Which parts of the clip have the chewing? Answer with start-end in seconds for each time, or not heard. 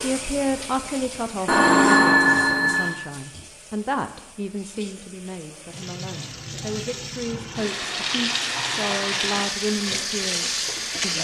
not heard.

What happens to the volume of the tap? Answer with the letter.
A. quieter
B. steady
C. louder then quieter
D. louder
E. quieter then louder
E.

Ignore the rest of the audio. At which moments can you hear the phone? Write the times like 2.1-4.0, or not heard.
1.4-3.0.